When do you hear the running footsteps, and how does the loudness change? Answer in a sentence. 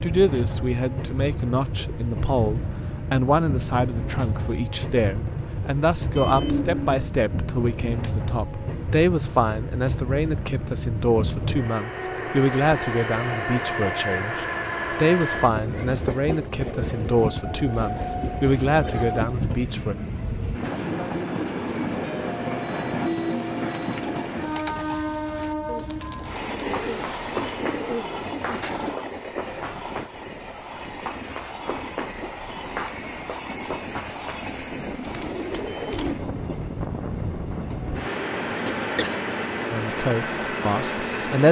You can hear the running footsteps from 26.6 to 36.1 s, getting quieter.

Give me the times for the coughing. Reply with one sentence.
You can hear the coughing from 38.5 to 39.2 s.